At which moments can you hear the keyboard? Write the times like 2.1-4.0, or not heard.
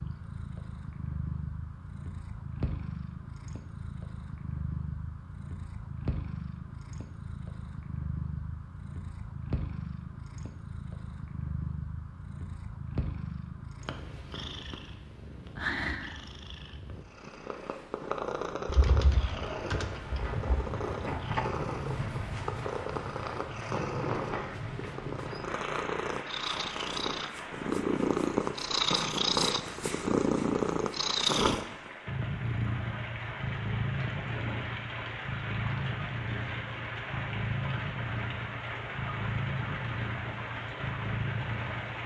18.6-20.4.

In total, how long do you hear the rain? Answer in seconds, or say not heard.
23 s.